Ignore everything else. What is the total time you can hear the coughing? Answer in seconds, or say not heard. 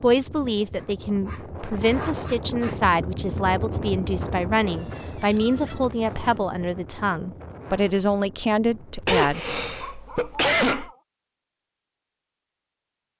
2 s.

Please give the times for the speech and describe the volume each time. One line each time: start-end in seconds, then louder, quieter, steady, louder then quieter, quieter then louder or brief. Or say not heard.
0.0-9.5 steady.